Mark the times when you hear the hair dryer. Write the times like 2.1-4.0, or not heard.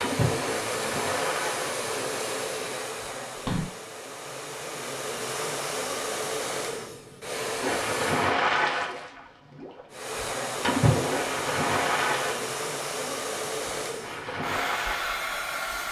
0.0-8.3, 9.9-15.8.